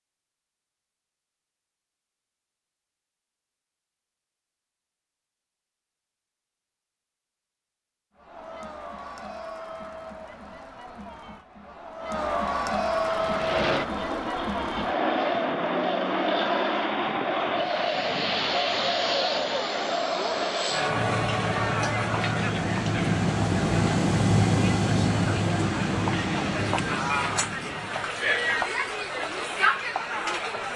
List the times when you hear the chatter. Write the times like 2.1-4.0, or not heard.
8.2-30.7.